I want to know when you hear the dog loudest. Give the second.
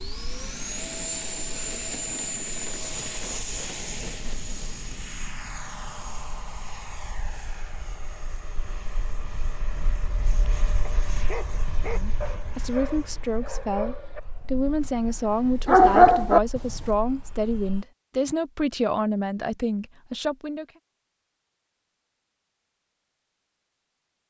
16 s.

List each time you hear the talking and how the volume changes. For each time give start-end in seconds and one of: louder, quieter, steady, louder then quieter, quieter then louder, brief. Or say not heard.
11.8-20.6 steady.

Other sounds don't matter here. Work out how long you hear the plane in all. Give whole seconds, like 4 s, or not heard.
18 s.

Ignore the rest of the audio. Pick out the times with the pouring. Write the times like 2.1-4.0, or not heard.
not heard.